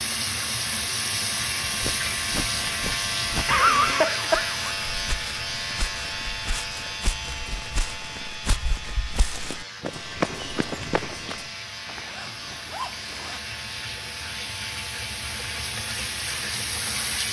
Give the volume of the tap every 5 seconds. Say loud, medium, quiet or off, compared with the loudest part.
loud, medium, medium, loud.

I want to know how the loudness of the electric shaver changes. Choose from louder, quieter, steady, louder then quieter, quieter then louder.
quieter.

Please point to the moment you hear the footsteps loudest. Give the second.
10 s.